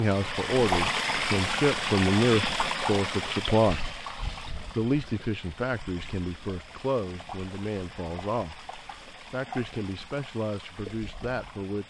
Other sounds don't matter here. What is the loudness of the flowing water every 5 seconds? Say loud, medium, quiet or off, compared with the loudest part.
loud, quiet, quiet.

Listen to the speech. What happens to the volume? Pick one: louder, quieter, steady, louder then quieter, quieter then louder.
quieter.